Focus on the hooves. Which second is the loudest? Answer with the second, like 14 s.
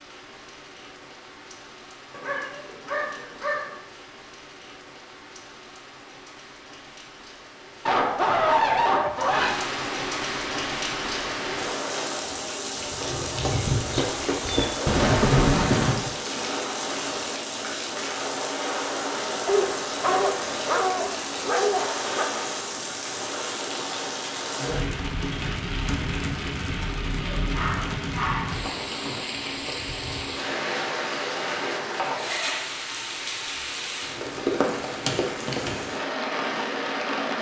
15 s.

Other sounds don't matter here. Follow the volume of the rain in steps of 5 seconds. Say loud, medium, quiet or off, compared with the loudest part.
quiet, medium, loud, loud, loud, loud, loud, loud.